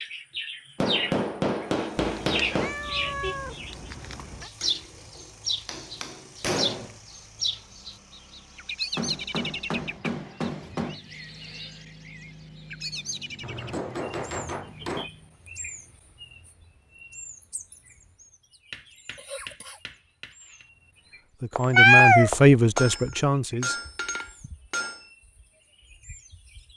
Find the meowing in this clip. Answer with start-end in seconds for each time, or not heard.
2.0-4.5, 21.6-22.8.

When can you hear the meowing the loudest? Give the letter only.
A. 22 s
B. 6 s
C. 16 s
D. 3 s
A.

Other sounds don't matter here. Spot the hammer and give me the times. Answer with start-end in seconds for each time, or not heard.
0.8-2.8, 4.6-7.0, 8.9-11.0, 13.4-15.1, 18.7-20.6, 22.8-25.1.